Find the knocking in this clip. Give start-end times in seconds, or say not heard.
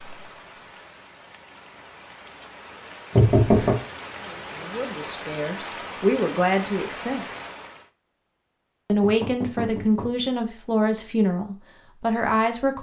3.1-3.8, 9.0-10.2.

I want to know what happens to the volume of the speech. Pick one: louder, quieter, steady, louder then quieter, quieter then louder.
louder.